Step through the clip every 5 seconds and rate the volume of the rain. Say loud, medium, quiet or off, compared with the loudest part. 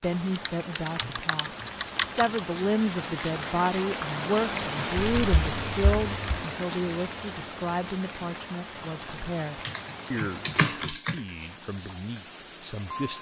loud, loud, medium.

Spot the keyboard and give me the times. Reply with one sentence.
You can hear the keyboard from 0.3 to 2.4 s, from 5.0 to 6.5 s and from 9.7 to 11.2 s.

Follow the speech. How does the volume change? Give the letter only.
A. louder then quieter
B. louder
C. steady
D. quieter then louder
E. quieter
E.